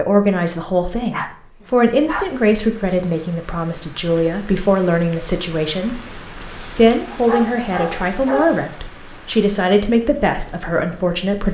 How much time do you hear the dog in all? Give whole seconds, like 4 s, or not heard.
3 s.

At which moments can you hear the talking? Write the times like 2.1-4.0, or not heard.
0.0-11.4.